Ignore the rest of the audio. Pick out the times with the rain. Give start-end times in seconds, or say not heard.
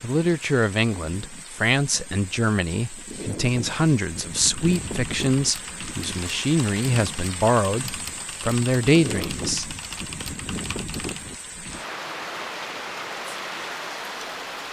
0.0-14.6.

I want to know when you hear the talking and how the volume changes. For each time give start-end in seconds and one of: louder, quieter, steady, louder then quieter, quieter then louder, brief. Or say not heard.
0.0-9.8 steady.